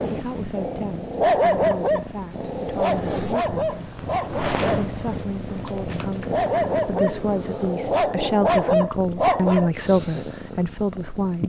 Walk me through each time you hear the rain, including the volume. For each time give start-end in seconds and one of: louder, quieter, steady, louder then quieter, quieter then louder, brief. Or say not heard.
not heard.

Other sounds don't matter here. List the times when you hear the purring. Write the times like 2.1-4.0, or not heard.
0.1-11.4.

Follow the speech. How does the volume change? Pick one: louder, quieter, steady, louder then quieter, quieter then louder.
louder.